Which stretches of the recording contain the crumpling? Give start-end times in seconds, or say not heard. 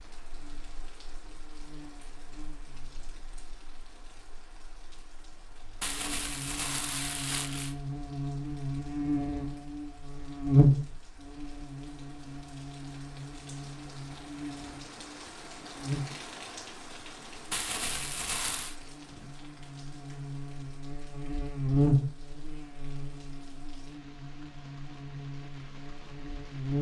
5.8-7.8, 17.5-18.8.